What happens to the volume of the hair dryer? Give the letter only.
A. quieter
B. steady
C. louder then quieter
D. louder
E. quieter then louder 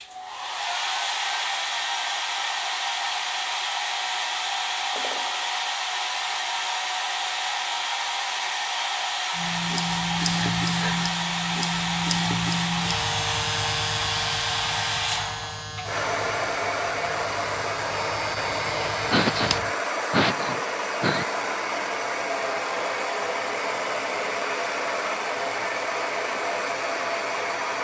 B.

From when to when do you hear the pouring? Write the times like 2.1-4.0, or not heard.
not heard.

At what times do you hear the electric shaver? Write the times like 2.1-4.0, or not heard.
9.3-19.7.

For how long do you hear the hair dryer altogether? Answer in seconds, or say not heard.
28 s.